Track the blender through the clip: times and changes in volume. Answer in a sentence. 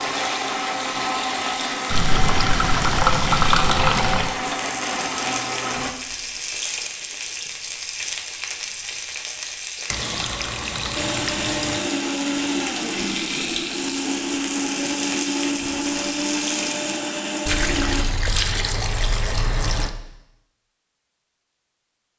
You can hear the blender from 0.0 to 6.0 s, at a steady volume; and from 10.9 to 18.1 s, at a steady volume.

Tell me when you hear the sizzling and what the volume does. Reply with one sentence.
The sizzling can be heard from 0.0 to 17.0 s, at a steady volume.